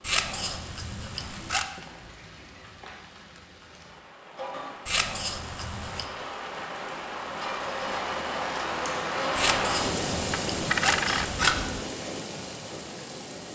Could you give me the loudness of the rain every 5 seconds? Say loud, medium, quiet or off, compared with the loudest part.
quiet, loud, loud.